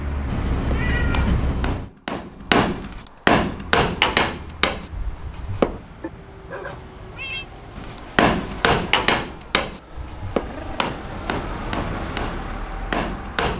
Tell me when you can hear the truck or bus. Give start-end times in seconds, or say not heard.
0.0-1.6, 3.5-13.5.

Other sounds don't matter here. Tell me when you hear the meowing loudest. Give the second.
1 s.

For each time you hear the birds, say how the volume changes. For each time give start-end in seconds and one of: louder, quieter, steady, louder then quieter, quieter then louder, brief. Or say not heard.
not heard.